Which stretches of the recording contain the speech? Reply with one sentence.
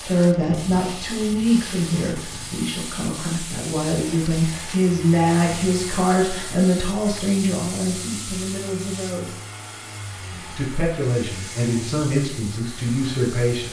You can hear the speech from 0.0 to 9.4 s and from 10.3 to 13.6 s.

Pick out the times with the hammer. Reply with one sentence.
You can't hear the hammer here.